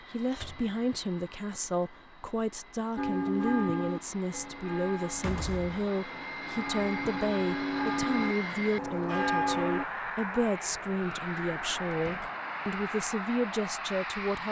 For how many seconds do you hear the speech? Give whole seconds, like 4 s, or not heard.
14 s.